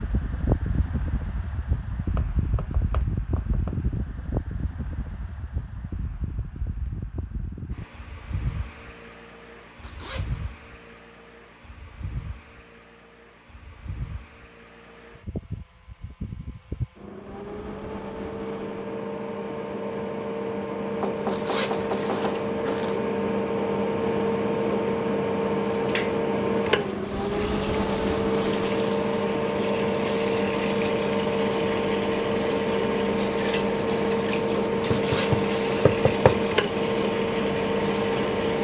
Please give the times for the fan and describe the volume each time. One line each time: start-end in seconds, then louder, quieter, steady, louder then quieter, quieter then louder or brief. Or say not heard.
0.0-38.5 quieter then louder.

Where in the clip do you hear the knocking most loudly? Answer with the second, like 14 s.
36 s.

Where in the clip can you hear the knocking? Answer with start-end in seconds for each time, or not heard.
2.1-3.8, 21.0-22.5, 34.9-36.4.